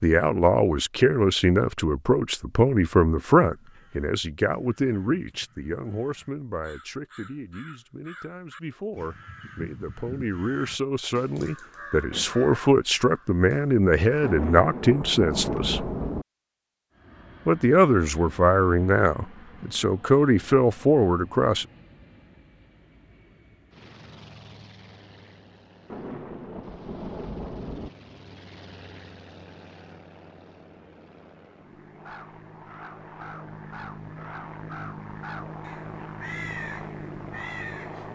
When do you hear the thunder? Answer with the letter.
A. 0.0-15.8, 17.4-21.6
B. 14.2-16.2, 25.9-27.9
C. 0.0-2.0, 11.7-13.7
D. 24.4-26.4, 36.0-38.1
B.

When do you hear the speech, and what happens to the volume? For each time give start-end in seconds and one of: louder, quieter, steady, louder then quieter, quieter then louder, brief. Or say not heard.
0.0-15.8 quieter then louder
17.4-21.6 quieter then louder.